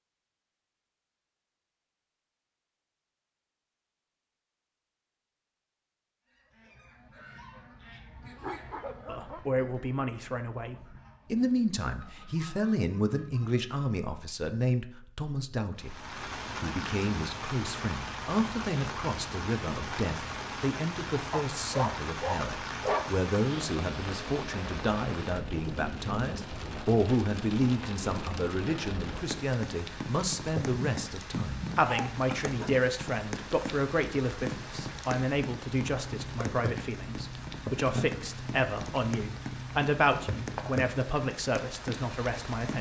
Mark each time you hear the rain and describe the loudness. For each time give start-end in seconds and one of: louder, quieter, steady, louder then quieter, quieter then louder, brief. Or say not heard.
15.8-42.7 steady.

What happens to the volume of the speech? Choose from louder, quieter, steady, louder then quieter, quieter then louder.
steady.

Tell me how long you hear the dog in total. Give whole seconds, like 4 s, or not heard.
5 s.